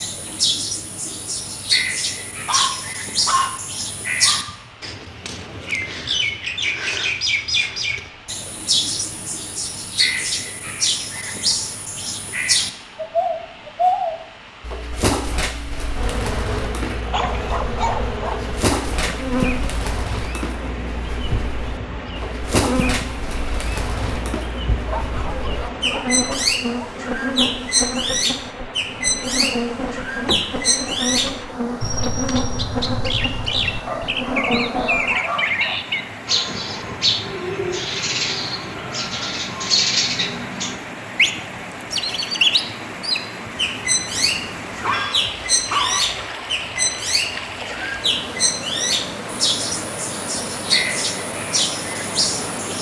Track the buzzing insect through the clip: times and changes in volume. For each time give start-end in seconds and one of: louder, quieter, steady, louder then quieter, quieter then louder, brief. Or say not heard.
15.9-35.2 steady.